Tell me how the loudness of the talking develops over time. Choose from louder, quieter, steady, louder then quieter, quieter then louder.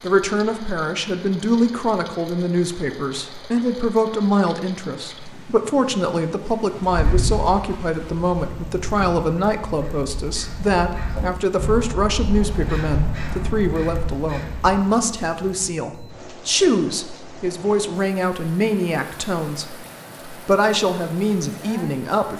steady.